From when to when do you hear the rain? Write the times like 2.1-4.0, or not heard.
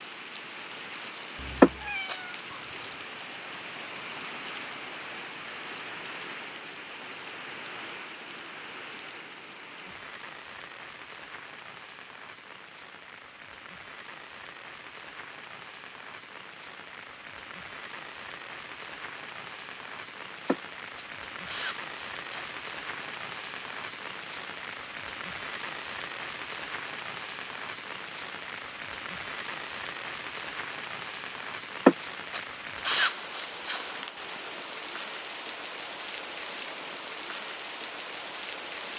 0.0-38.9.